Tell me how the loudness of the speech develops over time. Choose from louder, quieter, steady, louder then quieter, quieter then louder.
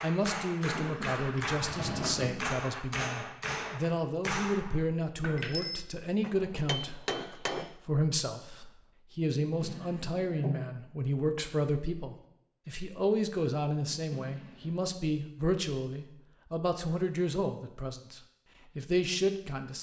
steady.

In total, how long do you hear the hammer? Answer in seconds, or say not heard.
8 s.